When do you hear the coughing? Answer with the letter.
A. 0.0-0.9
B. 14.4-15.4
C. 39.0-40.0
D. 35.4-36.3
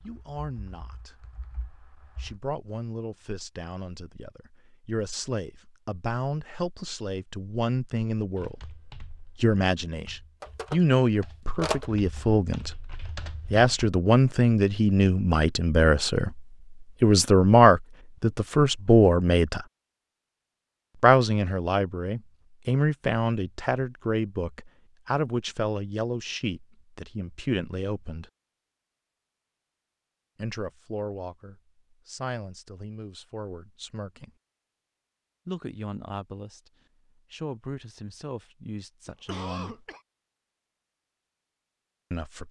C.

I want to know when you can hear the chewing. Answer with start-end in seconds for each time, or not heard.
not heard.